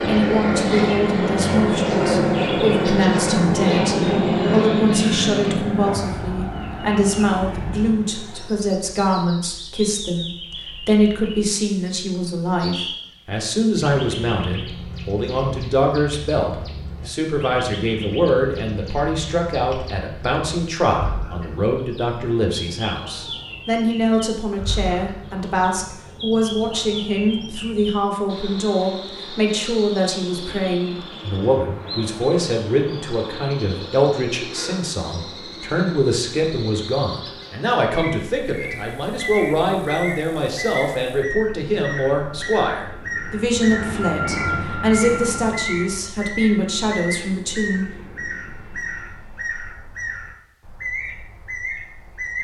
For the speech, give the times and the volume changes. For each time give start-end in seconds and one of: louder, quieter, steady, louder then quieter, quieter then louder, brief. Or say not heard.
0.1-47.9 steady.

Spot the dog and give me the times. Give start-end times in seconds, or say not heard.
not heard.